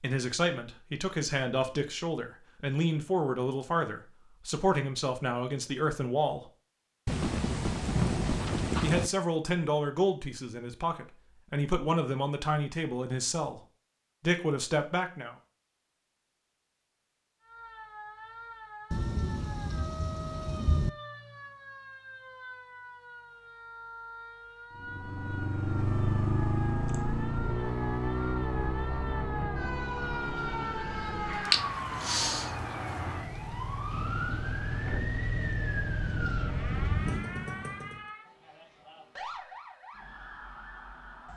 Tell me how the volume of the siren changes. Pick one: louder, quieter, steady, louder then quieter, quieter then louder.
louder then quieter.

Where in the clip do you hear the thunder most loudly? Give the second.
8 s.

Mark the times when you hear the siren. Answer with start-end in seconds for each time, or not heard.
17.4-41.3.